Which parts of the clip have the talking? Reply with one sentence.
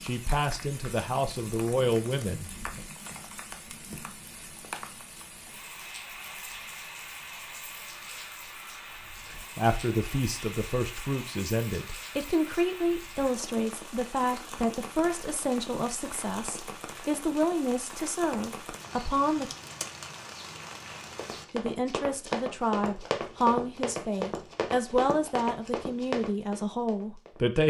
The talking can be heard from 0.0 to 2.8 s, from 9.2 to 19.5 s and from 21.5 to 27.6 s.